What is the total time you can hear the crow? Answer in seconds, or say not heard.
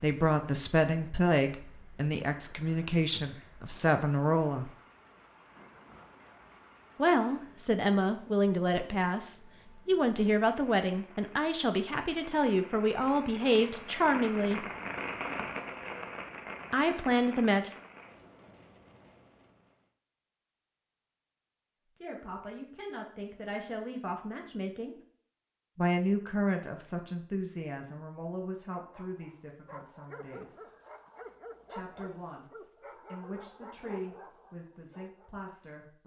not heard.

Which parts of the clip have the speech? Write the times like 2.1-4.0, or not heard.
0.0-4.7, 7.0-14.7, 16.7-17.7, 21.9-24.9, 25.8-30.6, 31.6-36.0.